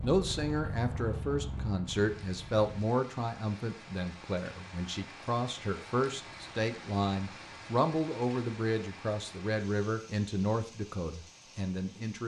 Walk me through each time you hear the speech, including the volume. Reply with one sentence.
The speech can be heard from 0.0 to 12.2 s, at a steady volume.